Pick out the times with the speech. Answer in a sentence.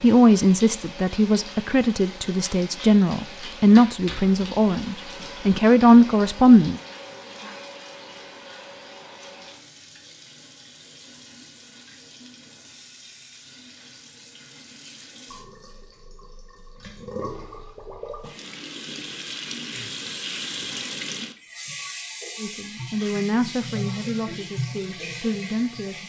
You can hear the speech from 0.0 to 6.8 s and from 22.4 to 26.0 s.